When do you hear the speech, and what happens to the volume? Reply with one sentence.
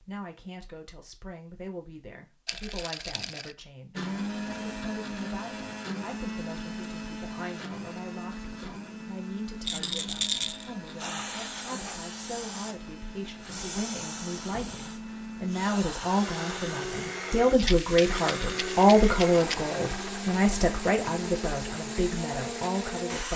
You can hear the speech from 0.0 to 23.3 s, getting louder.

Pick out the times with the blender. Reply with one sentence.
You can hear the blender from 3.9 to 23.3 s.